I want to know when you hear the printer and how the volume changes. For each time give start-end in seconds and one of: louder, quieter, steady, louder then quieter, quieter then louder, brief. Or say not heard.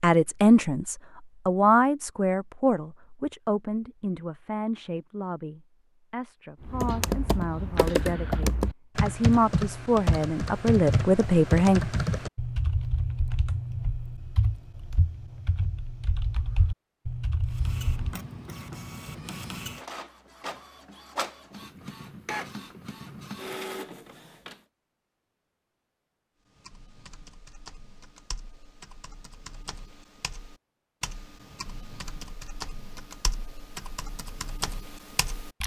17.4-24.6 steady.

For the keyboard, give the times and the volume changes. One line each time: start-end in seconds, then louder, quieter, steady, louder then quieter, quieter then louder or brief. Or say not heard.
6.6-18.2 quieter
26.5-35.6 louder.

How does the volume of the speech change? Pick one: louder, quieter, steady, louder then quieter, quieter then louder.
quieter then louder.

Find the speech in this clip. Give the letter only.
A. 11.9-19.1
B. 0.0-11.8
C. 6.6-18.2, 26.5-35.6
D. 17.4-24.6
B.